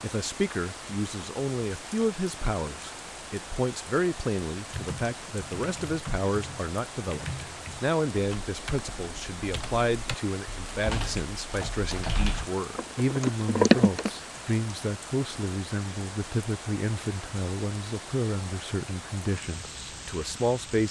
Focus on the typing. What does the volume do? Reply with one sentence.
The loudness of the typing goes up.